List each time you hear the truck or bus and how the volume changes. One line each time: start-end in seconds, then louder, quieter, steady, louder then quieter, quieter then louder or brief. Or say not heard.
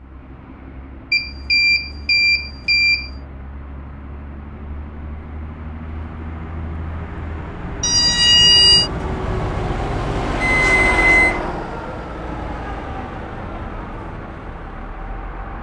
0.0-15.5 louder then quieter.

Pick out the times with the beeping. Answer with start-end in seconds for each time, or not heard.
1.1-3.1, 7.8-8.9, 10.4-11.4.